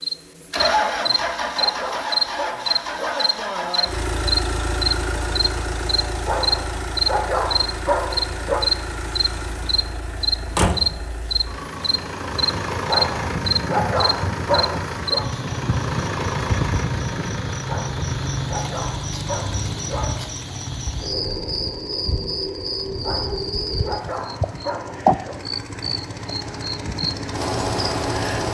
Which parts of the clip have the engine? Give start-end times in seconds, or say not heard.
0.0-28.4.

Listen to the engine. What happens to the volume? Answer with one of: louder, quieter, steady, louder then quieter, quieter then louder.
quieter.